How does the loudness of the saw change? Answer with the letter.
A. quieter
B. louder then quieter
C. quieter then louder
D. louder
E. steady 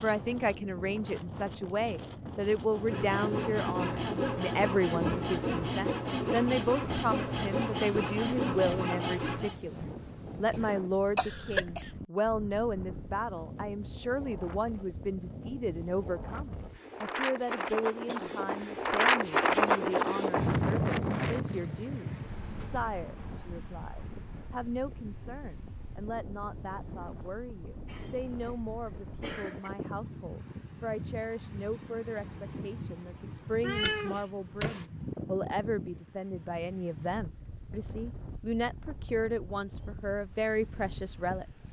E.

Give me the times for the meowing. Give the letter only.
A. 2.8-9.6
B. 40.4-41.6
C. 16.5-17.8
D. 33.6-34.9
D.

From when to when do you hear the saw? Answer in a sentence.
You can hear the saw from 2.8 to 9.6 s.